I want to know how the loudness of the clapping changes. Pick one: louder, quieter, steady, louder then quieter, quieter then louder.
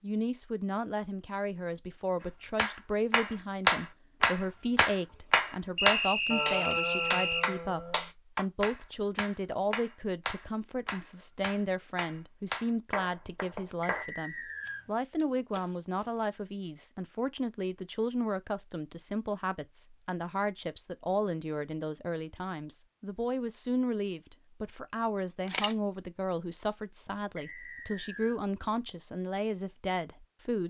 quieter.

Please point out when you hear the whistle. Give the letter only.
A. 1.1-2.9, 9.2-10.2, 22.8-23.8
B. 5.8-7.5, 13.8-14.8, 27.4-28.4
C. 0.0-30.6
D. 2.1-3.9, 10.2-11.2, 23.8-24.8
B.